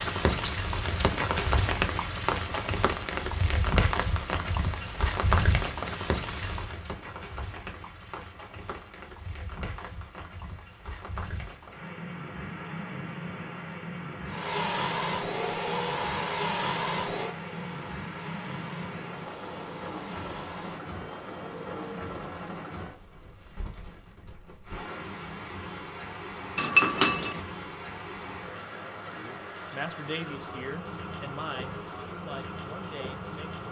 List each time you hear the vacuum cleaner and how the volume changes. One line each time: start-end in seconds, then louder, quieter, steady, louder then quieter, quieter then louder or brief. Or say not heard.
14.2-22.1 quieter.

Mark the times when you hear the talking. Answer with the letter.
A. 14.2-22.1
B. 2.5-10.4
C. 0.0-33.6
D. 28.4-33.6
D.